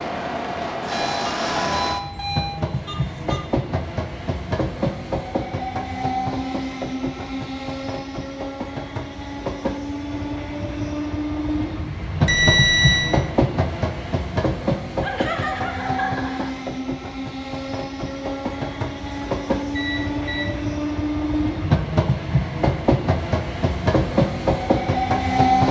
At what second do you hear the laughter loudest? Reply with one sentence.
The loudest moment of the laughter is at 15 seconds.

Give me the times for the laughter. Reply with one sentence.
The laughter can be heard from 15.0 to 16.5 s.